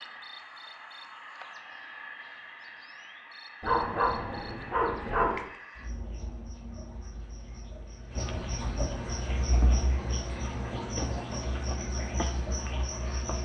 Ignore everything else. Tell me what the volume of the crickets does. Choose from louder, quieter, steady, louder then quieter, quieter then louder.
louder.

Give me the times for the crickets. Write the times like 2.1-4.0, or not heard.
0.0-13.4.